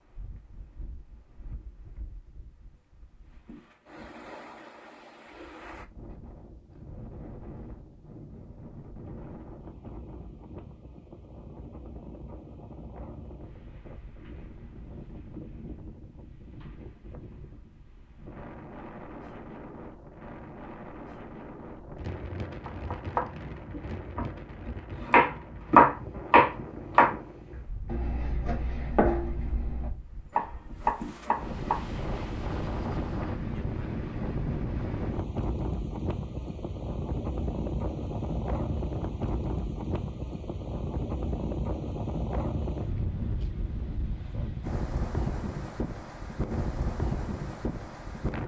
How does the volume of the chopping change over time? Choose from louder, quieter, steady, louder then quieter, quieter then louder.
louder then quieter.